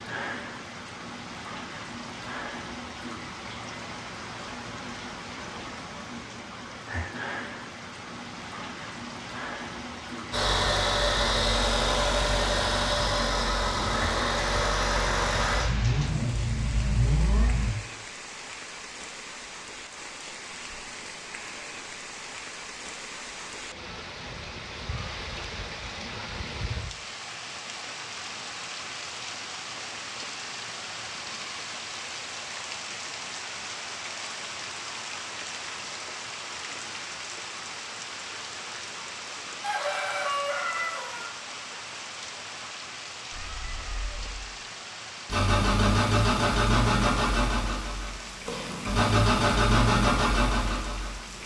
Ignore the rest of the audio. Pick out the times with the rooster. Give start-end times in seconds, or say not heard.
39.6-41.3.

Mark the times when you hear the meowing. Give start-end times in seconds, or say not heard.
43.3-44.5.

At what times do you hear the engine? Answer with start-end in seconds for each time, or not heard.
10.3-17.8, 45.2-51.4.